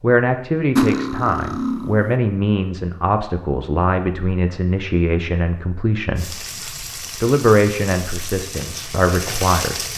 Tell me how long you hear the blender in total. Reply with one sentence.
The blender can't be heard in this clip.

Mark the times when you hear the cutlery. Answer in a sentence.
You can hear the cutlery from 0.8 to 2.1 s.